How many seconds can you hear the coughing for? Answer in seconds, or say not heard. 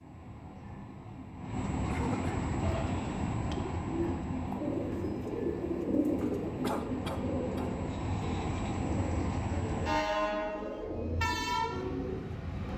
2 s.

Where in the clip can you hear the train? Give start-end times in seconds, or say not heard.
0.0-12.7.